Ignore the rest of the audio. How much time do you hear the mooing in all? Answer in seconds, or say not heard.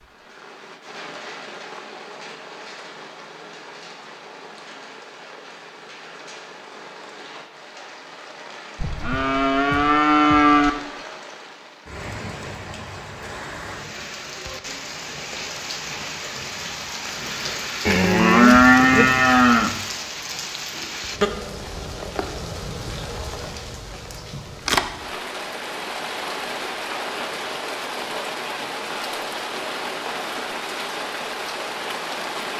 4 s.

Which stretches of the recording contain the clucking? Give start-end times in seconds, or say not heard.
not heard.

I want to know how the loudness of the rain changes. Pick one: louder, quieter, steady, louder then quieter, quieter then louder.
louder.